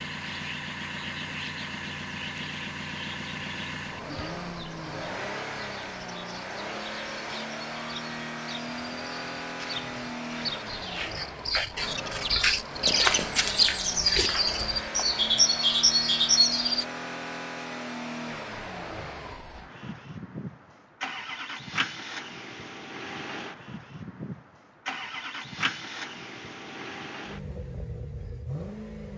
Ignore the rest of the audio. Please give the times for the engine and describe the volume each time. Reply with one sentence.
The engine can be heard from 0.0 to 29.1 s, at a steady volume.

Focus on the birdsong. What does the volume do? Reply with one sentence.
The volume of the birdsong goes up.